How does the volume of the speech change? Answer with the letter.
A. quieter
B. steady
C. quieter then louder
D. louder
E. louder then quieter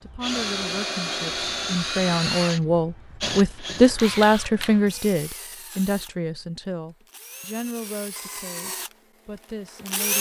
E.